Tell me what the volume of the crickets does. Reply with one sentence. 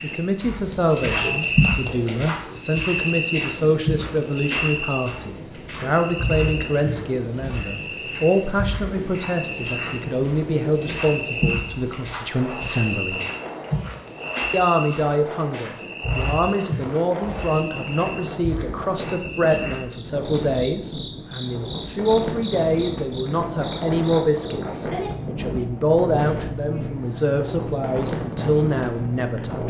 The loudness of the crickets goes down.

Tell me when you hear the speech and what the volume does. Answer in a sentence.
The speech can be heard from 0.0 to 13.2 s, at a steady volume; and from 14.5 to 29.6 s, at a steady volume.